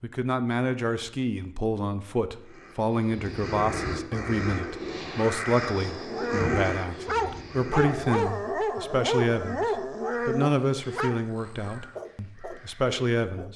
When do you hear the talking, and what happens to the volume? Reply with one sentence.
You can hear the talking from 0.0 to 13.5 s, at a steady volume.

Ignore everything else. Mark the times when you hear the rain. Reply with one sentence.
You can't hear the rain here.